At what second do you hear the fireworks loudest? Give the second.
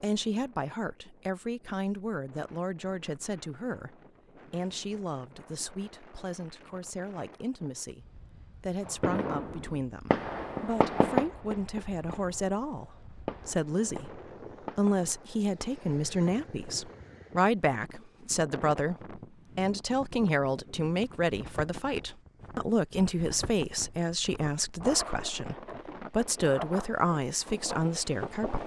11 s.